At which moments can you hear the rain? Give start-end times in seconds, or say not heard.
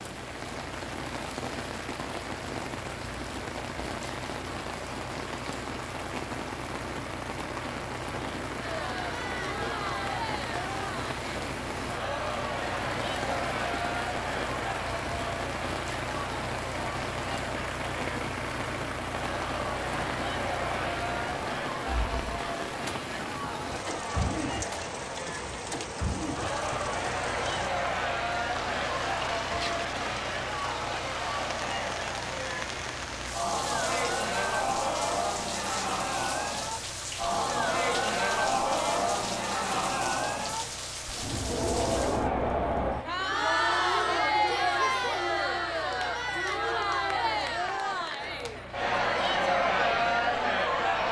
0.0-42.3.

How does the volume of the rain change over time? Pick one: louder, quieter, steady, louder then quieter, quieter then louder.
steady.